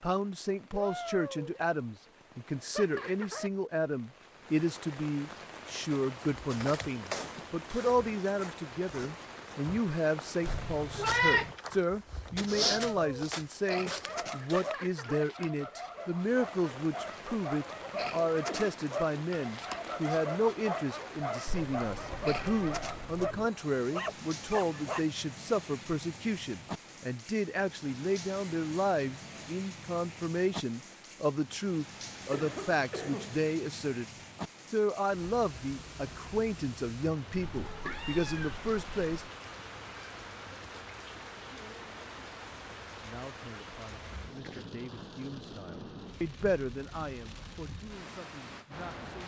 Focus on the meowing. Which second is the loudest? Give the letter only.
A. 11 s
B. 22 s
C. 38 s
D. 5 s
A.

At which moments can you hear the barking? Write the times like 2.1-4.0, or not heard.
13.7-25.0.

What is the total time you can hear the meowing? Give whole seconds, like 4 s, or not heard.
5 s.